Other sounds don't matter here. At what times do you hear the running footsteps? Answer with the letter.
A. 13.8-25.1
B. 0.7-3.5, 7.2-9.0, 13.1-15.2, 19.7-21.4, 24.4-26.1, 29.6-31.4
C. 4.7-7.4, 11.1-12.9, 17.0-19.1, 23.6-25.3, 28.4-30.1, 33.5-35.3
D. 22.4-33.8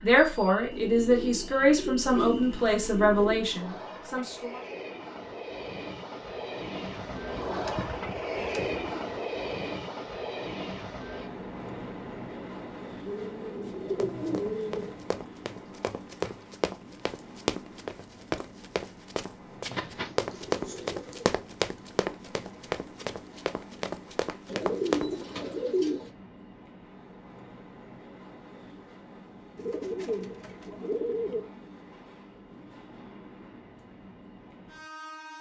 A.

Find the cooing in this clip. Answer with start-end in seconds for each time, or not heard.
0.7-3.5, 7.2-9.0, 13.1-15.2, 19.7-21.4, 24.4-26.1, 29.6-31.4.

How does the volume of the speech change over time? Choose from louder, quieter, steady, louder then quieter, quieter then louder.
quieter.